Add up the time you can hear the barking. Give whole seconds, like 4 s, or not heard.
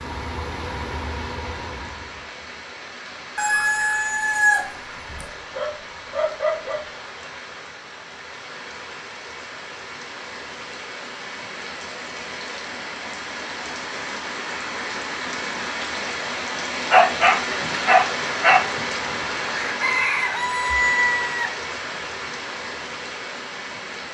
3 s.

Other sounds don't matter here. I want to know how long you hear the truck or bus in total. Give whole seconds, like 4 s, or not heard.
2 s.